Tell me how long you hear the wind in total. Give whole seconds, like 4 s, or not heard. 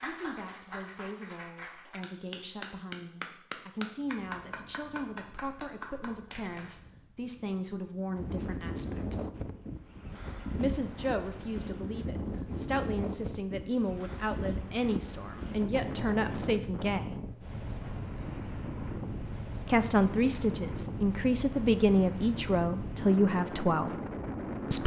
21 s.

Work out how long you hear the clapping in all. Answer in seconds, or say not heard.
7 s.